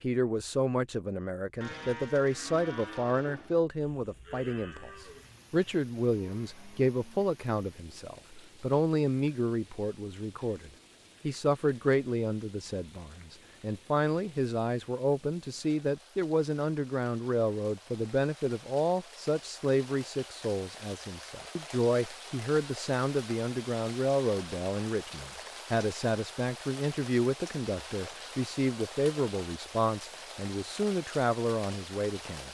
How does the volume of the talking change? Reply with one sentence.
The loudness of the talking stays about the same.